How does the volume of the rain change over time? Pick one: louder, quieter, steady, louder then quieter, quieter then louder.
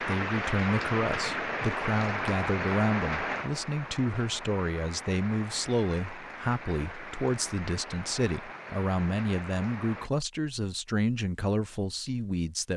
quieter.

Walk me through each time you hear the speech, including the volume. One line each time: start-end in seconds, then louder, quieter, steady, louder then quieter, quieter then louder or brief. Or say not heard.
0.0-12.7 steady.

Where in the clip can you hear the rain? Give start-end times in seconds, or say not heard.
0.0-10.1.